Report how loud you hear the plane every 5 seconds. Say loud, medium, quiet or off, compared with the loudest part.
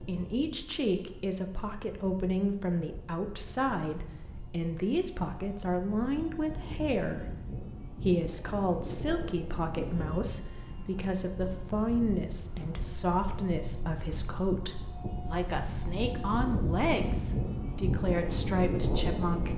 quiet, medium, medium, loud.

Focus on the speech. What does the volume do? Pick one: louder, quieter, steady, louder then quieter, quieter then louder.
steady.